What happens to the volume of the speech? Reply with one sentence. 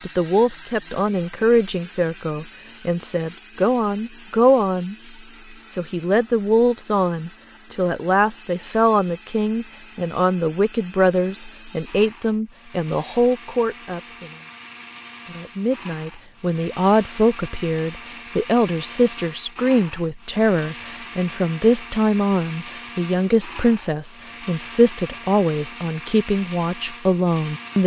The loudness of the speech stays about the same.